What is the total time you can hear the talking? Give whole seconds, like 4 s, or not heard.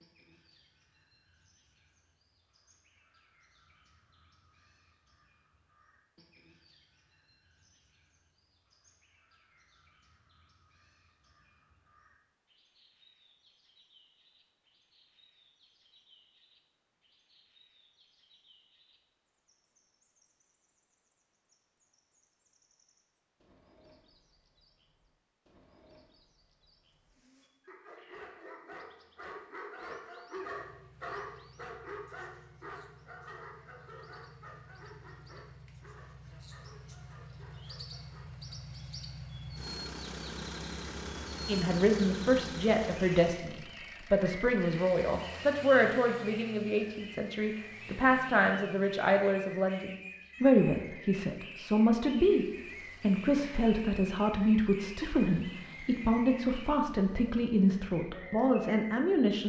18 s.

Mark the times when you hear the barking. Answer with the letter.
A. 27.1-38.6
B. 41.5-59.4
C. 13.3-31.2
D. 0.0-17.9
A.